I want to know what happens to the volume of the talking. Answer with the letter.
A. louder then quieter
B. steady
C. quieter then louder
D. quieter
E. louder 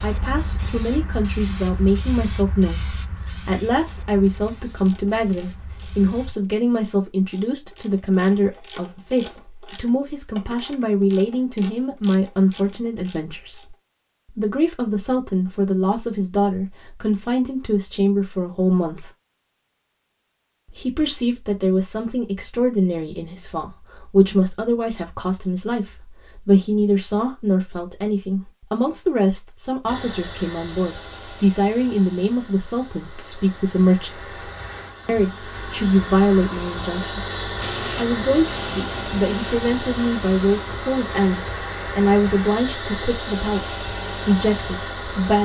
B.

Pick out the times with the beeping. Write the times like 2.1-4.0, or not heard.
not heard.